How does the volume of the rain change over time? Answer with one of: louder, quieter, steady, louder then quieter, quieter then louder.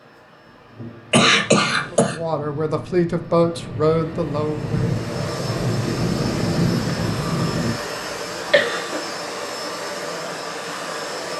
louder.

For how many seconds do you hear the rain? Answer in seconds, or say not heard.
8 s.